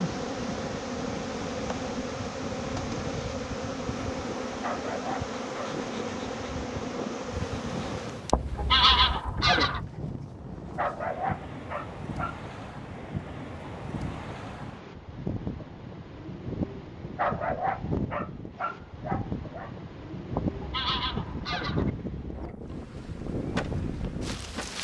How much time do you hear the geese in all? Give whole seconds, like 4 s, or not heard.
4 s.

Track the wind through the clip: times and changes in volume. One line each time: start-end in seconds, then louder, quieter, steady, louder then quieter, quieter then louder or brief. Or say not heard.
0.0-24.7 louder.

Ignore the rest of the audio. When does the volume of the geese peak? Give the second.
9 s.